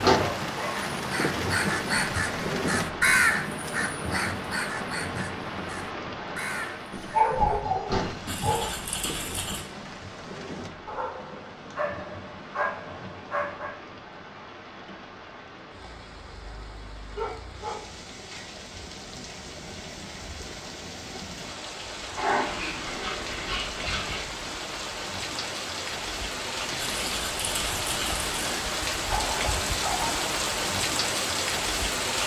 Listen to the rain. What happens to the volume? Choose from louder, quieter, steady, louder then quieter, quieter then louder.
quieter then louder.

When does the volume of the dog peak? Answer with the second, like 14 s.
7 s.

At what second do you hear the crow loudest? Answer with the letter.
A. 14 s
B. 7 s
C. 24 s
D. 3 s
D.